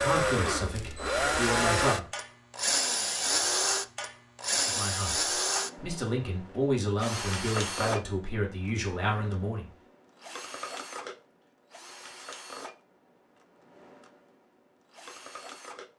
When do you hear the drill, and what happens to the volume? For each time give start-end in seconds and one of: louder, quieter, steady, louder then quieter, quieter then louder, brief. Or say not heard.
0.0-15.9 quieter.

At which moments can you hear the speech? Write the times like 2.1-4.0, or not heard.
0.0-2.0, 4.6-9.7.